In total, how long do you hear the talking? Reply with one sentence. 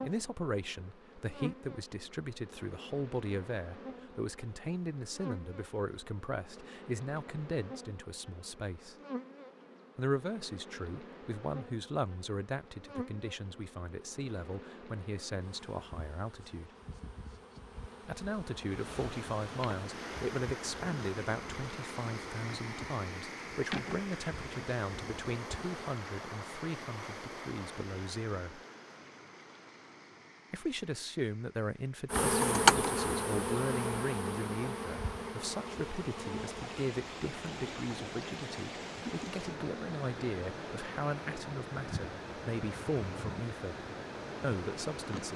The talking can be heard for 41 seconds in total.